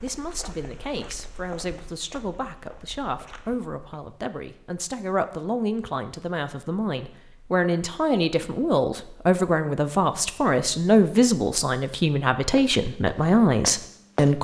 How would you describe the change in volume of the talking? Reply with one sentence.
The volume of the talking goes up.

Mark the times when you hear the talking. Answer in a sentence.
The talking can be heard from 0.0 to 14.3 s.